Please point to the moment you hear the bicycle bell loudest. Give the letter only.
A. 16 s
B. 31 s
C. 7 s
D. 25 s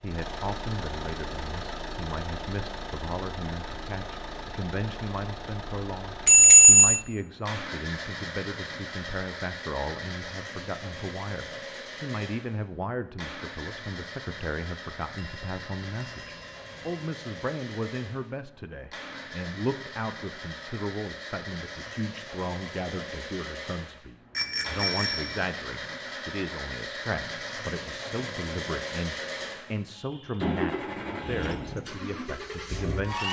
C.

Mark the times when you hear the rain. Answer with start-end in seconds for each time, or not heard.
not heard.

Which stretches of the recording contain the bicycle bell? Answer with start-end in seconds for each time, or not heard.
6.2-7.0, 15.2-16.9, 24.3-25.4.